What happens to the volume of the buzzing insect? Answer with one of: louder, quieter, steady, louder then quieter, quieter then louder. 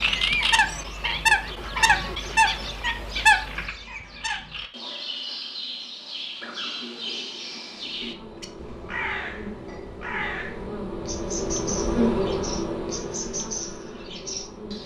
louder then quieter.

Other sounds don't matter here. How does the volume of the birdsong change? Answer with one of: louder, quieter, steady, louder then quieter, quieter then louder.
quieter.